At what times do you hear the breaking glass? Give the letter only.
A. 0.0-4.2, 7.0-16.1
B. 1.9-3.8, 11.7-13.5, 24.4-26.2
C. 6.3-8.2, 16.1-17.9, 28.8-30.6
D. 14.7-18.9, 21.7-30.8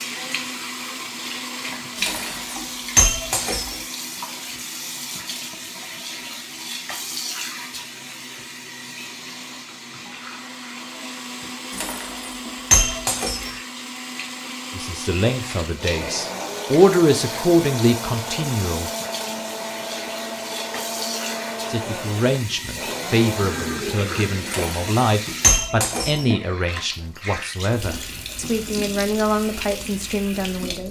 B.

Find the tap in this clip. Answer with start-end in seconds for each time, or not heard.
0.0-30.8.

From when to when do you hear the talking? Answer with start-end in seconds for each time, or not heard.
14.7-18.9, 21.7-30.8.